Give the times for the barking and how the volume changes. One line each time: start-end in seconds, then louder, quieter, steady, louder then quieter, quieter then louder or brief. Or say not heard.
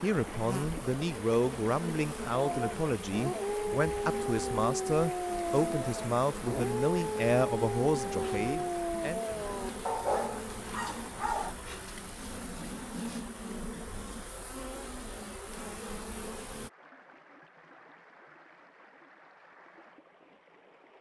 2.3-11.6 steady.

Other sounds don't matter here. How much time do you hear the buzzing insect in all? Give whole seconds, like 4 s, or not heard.
17 s.